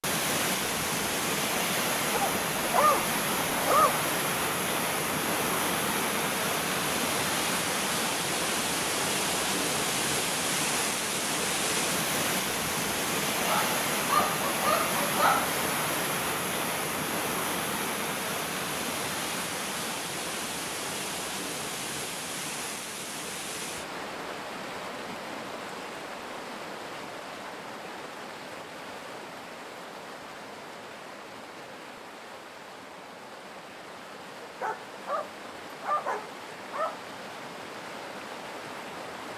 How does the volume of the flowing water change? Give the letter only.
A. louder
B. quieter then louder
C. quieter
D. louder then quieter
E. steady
C.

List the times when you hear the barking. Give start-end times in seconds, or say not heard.
2.1-4.0, 13.4-15.5, 34.4-37.0.